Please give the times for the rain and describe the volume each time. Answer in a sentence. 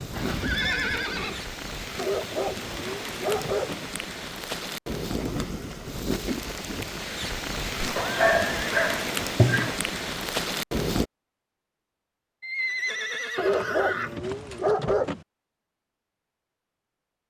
You can hear the rain from 0.0 to 11.1 s, getting louder.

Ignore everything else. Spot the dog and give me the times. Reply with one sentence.
The dog can be heard from 1.9 to 3.9 s, from 8.0 to 9.8 s and from 13.3 to 15.2 s.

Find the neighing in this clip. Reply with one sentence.
The neighing can be heard from 0.1 to 1.4 s, from 7.8 to 8.9 s and from 12.4 to 14.2 s.